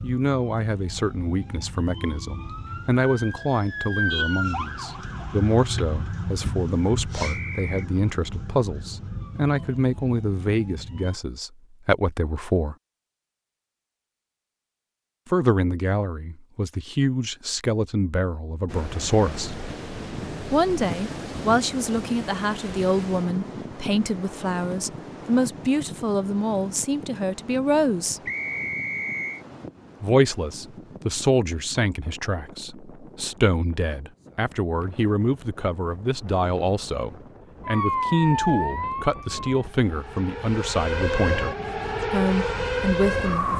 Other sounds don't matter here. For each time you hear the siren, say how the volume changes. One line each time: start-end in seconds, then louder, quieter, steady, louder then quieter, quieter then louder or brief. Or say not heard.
0.0-11.2 louder then quieter
37.6-43.5 quieter then louder.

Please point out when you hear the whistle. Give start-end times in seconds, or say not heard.
7.2-7.8, 28.2-29.4.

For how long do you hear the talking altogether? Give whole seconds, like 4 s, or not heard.
38 s.